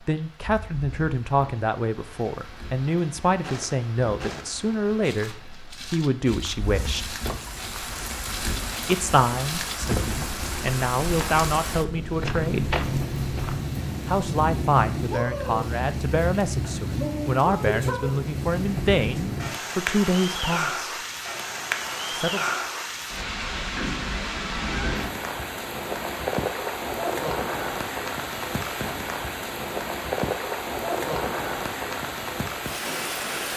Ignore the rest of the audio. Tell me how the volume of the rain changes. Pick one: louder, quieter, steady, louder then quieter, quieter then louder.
louder.